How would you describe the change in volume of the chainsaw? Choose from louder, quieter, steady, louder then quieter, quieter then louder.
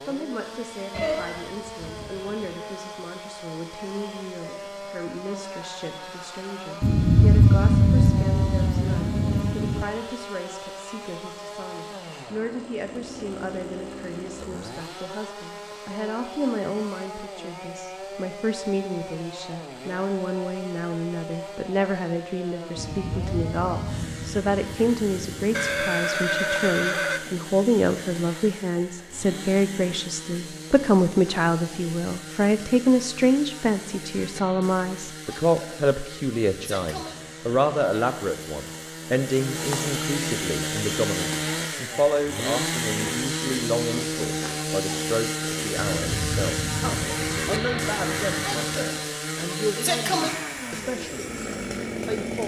louder.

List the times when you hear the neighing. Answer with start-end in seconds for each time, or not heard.
0.9-2.6, 25.5-27.2, 47.0-48.7.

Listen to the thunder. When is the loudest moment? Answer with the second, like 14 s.
7 s.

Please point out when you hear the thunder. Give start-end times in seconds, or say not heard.
6.8-9.8, 22.8-25.6, 45.8-48.5.